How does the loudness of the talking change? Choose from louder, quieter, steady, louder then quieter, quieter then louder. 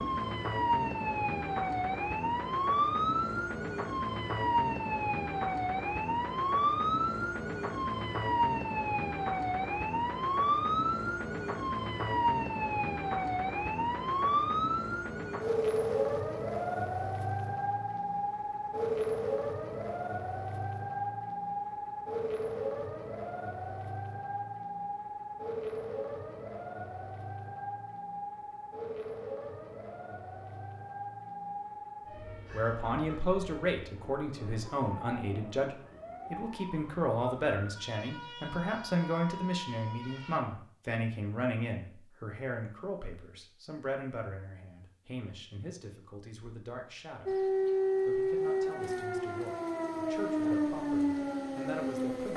quieter.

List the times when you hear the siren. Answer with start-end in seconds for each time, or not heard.
0.0-40.4, 47.2-52.3.